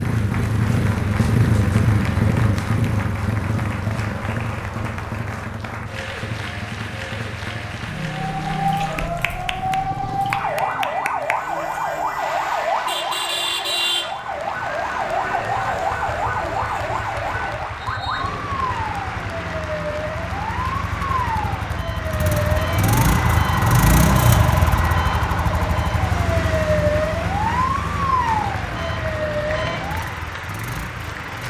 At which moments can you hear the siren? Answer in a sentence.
You can hear the siren from 8.2 to 30.2 s.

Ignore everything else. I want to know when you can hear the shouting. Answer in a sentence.
You can't hear the shouting here.